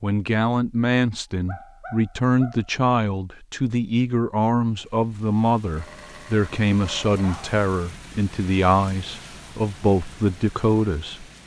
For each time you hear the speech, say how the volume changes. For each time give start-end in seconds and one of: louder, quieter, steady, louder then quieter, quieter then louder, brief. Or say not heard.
0.0-11.2 steady.